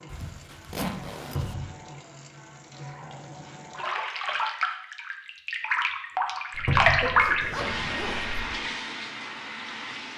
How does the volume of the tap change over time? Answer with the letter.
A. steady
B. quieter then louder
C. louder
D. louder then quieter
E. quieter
D.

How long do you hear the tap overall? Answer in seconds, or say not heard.
10 s.